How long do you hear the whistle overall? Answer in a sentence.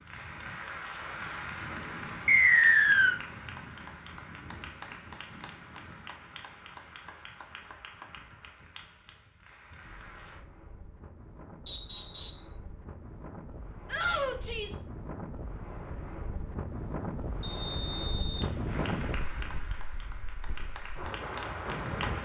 The whistle can be heard for 3 seconds in total.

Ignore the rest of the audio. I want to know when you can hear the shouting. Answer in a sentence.
You can hear the shouting from 13.8 to 14.8 s.